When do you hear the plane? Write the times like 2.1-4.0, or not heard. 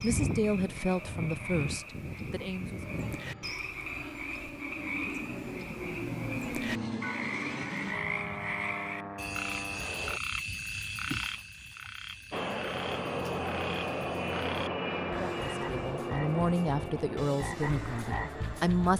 0.0-10.2, 12.3-18.9.